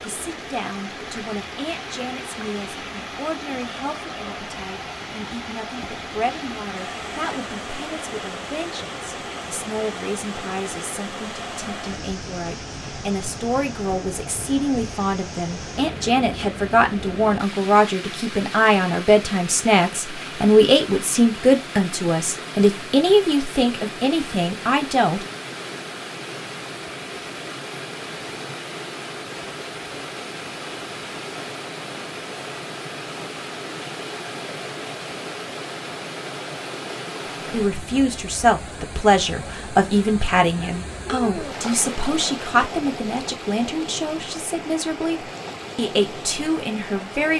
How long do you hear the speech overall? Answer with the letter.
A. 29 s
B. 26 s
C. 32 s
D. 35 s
D.